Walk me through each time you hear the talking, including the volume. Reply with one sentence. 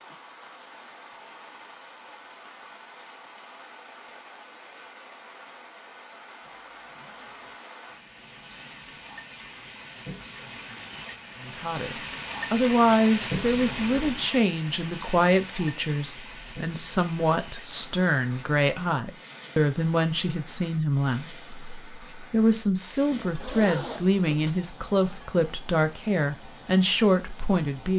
The talking can be heard from 11.4 to 27.9 s, at a steady volume.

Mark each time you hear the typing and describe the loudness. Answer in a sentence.
You can't hear the typing here.